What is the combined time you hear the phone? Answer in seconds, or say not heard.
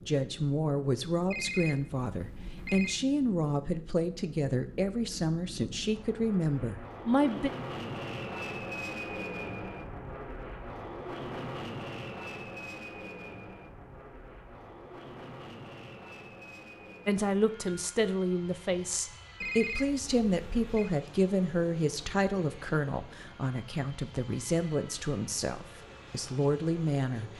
3 s.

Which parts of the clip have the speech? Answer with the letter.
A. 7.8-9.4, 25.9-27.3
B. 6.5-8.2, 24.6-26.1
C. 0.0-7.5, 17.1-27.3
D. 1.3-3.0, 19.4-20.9
C.